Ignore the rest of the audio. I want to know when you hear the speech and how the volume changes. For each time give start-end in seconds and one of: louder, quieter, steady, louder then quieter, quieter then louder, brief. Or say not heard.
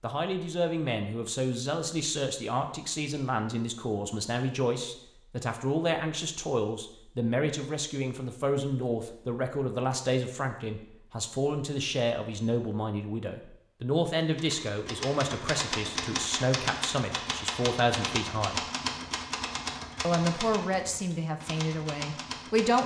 0.0-18.6 steady
20.0-22.8 brief.